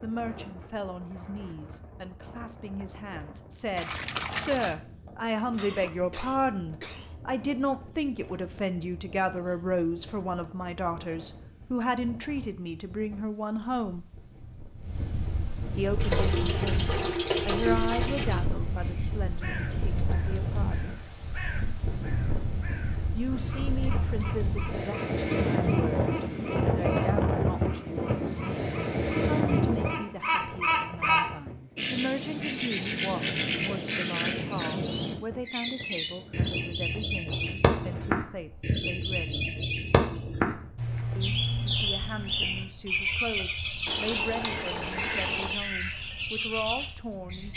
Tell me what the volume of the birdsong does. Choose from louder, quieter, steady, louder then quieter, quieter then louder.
louder.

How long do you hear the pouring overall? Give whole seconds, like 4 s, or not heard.
5 s.